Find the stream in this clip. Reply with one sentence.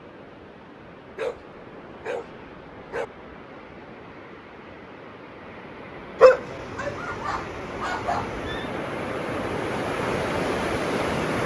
The stream can be heard from 0.0 to 11.4 s.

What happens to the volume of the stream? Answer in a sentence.
The loudness of the stream goes up.